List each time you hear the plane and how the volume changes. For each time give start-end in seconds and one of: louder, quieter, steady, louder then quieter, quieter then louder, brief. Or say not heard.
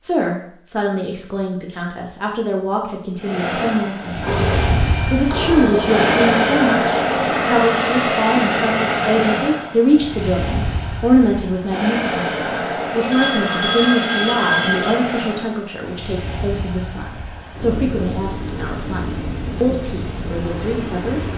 3.2-21.3 quieter.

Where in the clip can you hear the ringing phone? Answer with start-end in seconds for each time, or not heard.
4.2-6.6, 13.1-15.0.